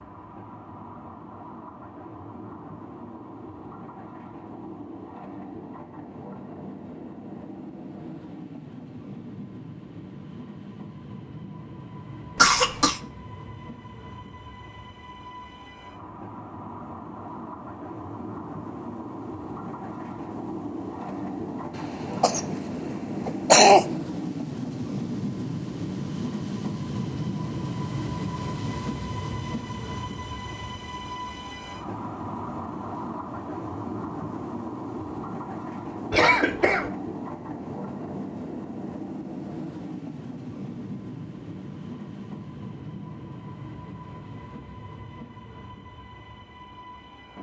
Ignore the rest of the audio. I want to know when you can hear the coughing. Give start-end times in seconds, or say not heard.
12.3-13.0, 21.8-23.9, 36.1-36.9.